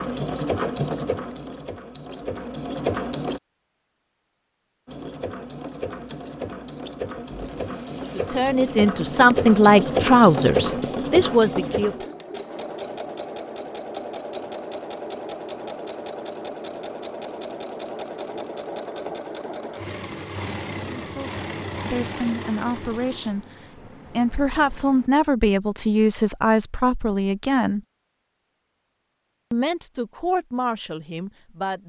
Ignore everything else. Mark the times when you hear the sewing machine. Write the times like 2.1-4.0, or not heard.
0.0-3.4, 4.8-25.1.